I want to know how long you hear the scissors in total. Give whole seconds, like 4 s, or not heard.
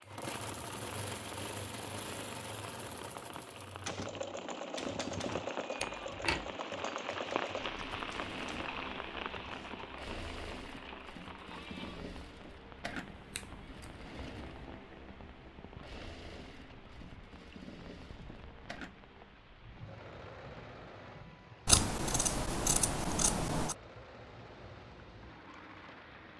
5 s.